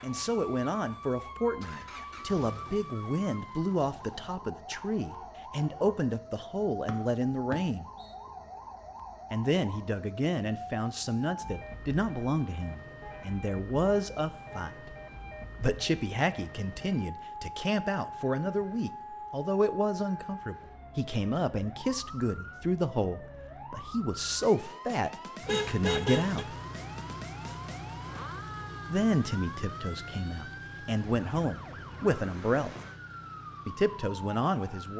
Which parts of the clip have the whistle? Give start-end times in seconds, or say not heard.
6.8-8.2.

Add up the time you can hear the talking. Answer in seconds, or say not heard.
29 s.